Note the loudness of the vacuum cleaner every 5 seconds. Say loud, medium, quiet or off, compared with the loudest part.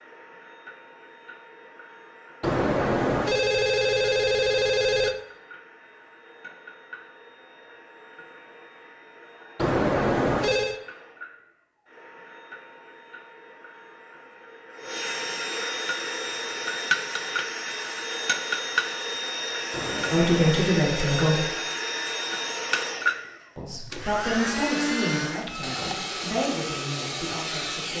quiet, quiet, quiet, loud, loud, loud.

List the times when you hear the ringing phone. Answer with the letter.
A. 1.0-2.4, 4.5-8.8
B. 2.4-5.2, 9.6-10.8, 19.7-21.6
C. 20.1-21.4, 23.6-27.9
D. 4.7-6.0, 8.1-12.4
B.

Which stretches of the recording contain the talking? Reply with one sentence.
You can hear the talking from 20.1 to 21.4 s and from 23.6 to 27.9 s.